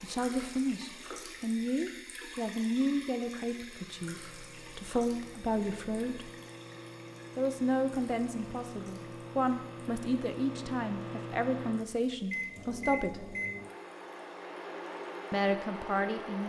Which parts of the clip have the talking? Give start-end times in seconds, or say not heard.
0.0-6.3, 7.3-13.3, 15.3-16.4.